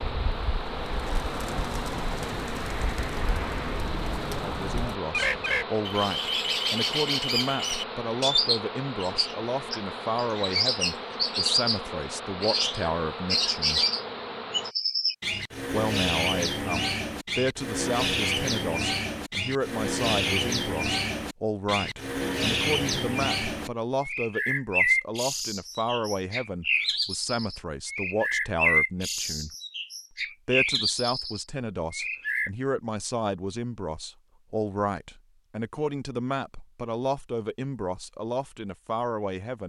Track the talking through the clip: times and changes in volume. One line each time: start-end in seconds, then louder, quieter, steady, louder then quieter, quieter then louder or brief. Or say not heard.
4.5-13.8 steady
15.7-29.5 steady
30.4-39.6 steady.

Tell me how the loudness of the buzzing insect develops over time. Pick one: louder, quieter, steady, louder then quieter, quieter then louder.
steady.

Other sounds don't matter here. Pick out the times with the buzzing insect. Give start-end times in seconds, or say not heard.
0.0-14.8.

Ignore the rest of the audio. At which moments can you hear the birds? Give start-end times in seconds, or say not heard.
0.0-32.5.